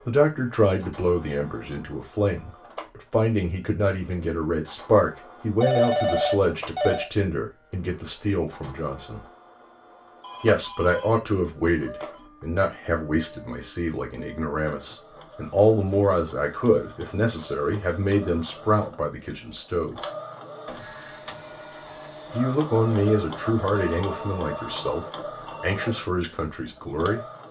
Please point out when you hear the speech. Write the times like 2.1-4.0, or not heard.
0.1-9.2, 10.4-20.1, 22.3-27.2.